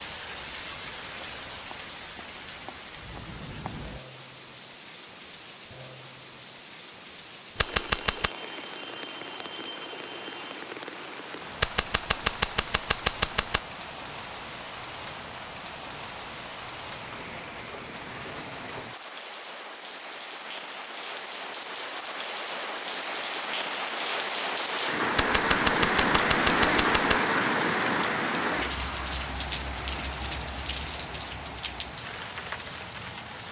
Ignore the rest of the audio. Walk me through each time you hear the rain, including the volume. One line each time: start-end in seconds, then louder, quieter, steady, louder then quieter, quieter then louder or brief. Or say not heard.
0.0-33.4 louder.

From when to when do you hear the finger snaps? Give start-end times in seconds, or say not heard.
not heard.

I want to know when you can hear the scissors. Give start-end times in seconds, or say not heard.
7.6-8.3, 11.6-13.6, 25.1-27.1.